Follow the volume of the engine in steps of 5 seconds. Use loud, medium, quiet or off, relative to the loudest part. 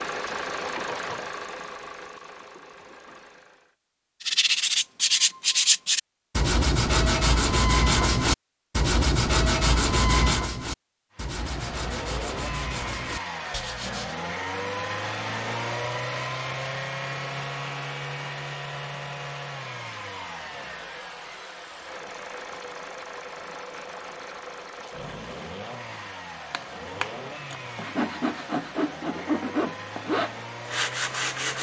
loud, off, loud, loud, medium, medium, medium.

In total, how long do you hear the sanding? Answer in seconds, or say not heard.
15 s.